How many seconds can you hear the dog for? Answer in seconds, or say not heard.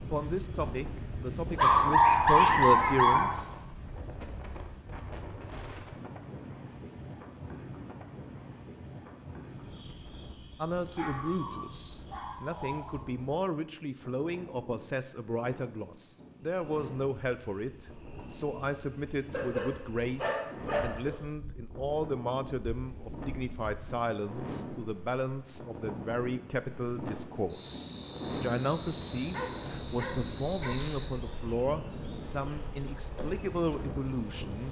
7 s.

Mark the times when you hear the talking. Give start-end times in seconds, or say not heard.
0.0-3.5, 10.6-34.6.